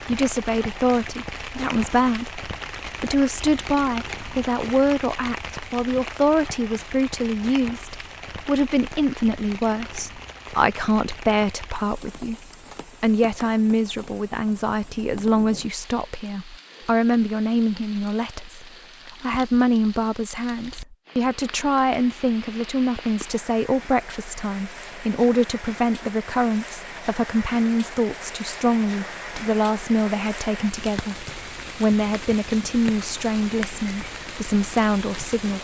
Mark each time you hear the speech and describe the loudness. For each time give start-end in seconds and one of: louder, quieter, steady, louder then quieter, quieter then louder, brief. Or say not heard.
0.1-35.5 steady.